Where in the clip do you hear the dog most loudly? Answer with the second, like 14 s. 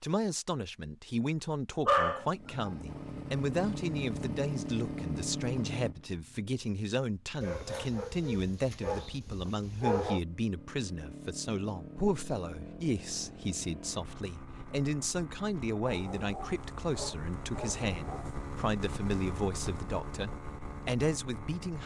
2 s.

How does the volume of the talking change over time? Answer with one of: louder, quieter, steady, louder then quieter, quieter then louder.
steady.